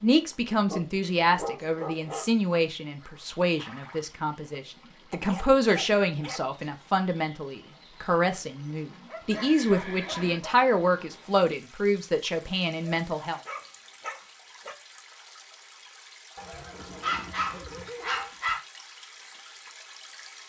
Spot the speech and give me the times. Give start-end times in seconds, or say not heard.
0.0-13.4.